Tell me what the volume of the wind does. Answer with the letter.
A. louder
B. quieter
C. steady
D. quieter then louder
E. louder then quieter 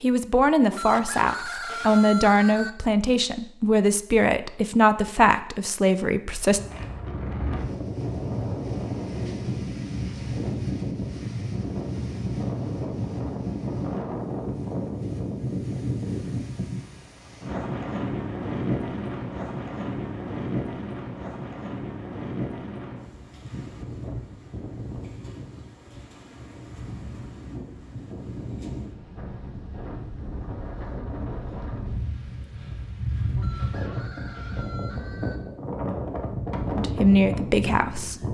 D.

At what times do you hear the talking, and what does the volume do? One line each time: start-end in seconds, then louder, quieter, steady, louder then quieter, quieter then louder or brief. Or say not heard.
0.0-6.6 steady
36.8-38.2 brief.